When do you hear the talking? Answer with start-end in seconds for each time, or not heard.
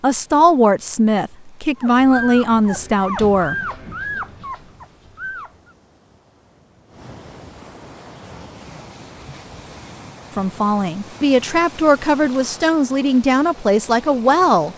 0.0-3.5, 10.3-14.7.